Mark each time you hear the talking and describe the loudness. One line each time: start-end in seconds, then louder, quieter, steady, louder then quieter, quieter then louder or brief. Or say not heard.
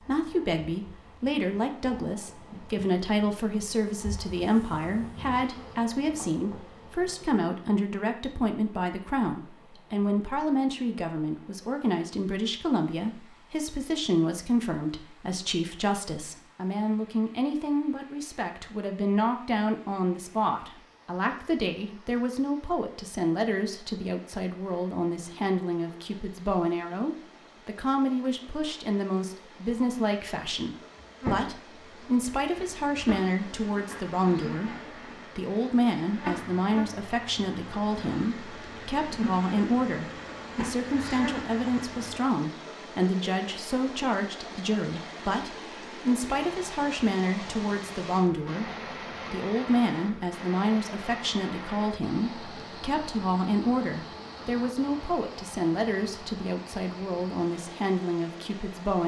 0.0-59.0 steady.